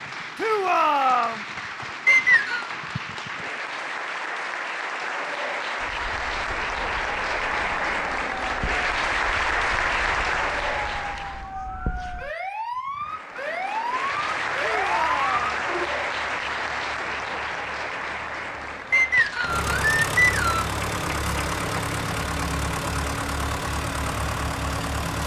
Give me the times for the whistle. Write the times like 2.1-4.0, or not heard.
2.0-2.7, 18.9-20.7.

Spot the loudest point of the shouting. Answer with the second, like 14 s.
1 s.